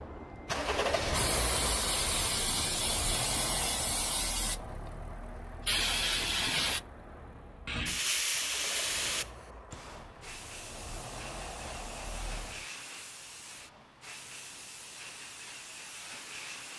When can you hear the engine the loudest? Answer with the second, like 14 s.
1 s.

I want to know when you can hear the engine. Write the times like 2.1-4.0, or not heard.
0.0-12.7.